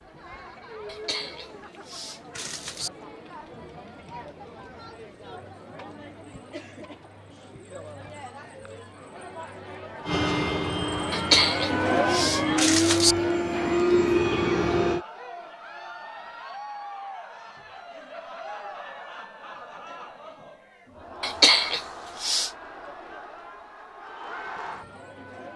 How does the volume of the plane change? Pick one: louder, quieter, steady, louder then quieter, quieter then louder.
louder.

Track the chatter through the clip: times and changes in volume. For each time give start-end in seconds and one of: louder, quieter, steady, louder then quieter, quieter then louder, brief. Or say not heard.
0.0-25.5 louder then quieter.